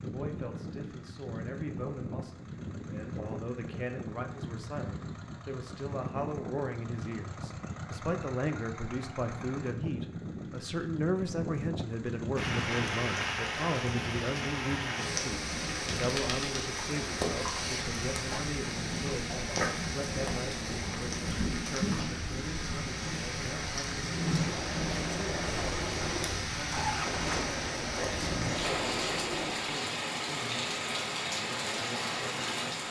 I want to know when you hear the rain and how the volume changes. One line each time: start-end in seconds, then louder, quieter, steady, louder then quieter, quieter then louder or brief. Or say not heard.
12.3-32.8 steady.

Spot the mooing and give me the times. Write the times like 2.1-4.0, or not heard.
not heard.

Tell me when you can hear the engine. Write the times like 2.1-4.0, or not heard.
0.0-12.8, 24.2-29.6.